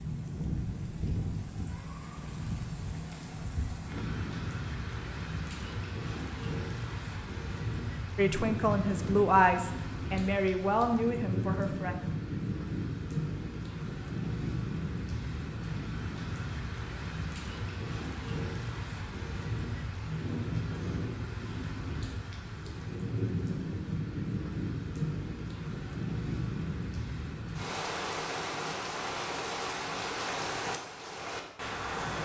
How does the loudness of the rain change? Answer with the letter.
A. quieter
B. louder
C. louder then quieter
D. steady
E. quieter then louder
D.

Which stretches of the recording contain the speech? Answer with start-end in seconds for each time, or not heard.
8.2-11.9.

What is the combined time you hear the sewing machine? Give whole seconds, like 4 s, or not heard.
not heard.